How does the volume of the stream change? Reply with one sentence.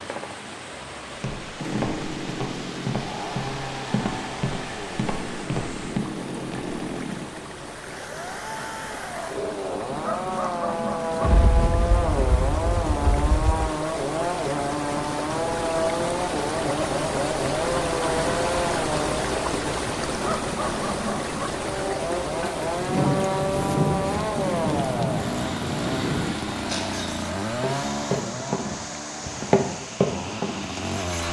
The loudness of the stream goes up, then down.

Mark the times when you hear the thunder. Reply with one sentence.
You can hear the thunder from 11.2 to 13.7 s and from 22.4 to 26.4 s.